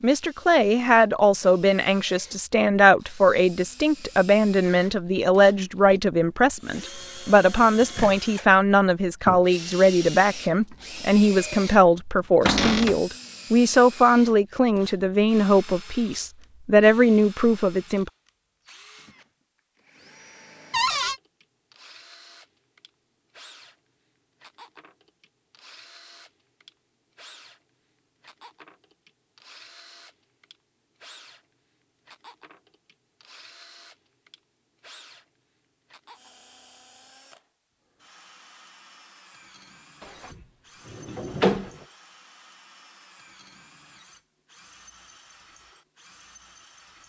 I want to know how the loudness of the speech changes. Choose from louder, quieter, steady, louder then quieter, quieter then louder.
steady.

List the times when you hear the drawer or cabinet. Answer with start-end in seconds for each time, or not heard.
12.4-13.0, 20.7-21.2, 40.0-41.7.